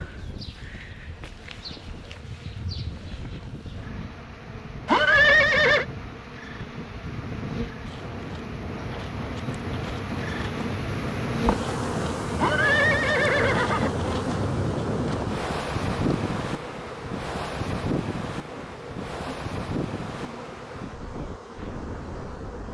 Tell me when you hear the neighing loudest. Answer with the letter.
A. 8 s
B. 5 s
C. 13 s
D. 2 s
B.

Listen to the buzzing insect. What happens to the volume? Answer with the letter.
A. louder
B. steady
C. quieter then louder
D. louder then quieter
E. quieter
D.